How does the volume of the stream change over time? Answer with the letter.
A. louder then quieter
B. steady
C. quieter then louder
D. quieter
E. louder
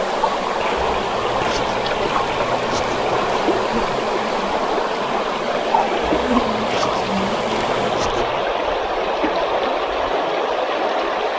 B.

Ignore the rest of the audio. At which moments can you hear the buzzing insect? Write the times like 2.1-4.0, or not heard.
0.0-8.1.